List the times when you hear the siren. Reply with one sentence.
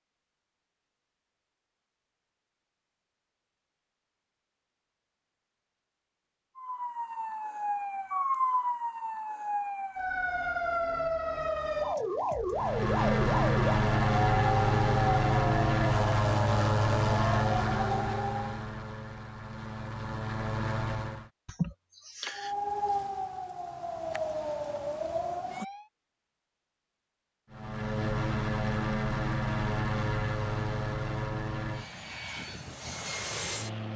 The siren can be heard from 6.5 to 18.6 s and from 22.3 to 25.9 s.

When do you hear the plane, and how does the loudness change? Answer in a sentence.
You can hear the plane from 12.5 to 21.3 s, getting quieter; and from 27.5 to 33.9 s, getting quieter.